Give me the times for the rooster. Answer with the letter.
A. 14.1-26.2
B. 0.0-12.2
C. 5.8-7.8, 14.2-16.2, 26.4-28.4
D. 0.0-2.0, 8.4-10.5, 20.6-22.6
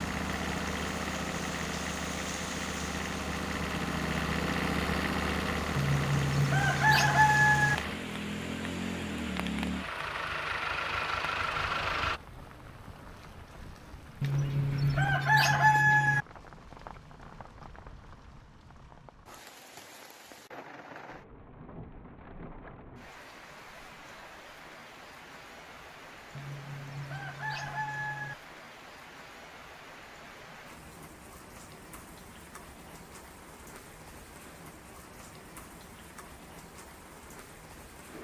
C.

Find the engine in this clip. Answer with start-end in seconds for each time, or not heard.
0.0-12.2.